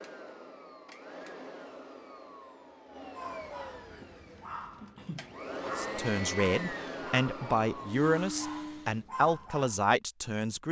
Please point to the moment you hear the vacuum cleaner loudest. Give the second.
6 s.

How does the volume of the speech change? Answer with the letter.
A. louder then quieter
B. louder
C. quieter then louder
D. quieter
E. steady
E.